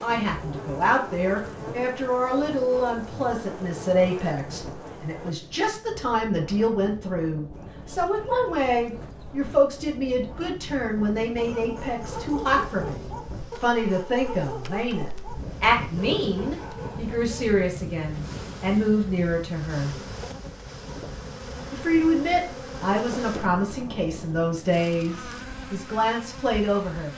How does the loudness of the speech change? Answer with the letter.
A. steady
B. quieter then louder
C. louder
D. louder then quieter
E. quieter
A.